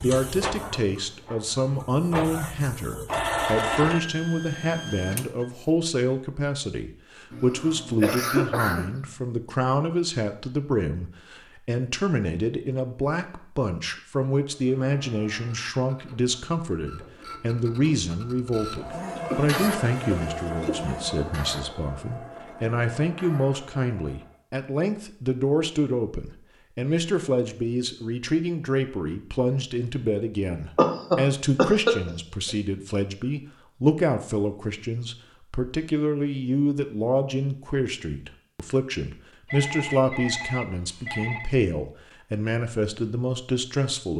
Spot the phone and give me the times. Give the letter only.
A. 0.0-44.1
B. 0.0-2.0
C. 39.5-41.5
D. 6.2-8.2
C.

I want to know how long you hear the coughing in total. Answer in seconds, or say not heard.
5 s.